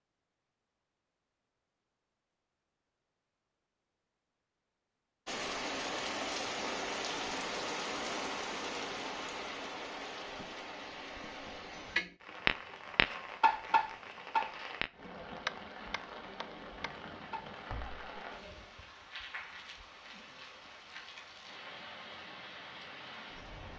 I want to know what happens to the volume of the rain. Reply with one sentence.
The loudness of the rain goes down.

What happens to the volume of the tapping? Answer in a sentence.
The loudness of the tapping goes down.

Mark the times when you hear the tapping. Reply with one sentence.
You can hear the tapping from 11.9 to 17.9 s.